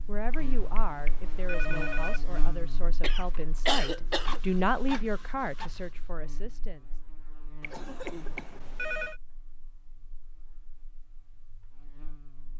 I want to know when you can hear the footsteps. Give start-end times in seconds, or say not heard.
not heard.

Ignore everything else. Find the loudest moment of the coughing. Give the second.
4 s.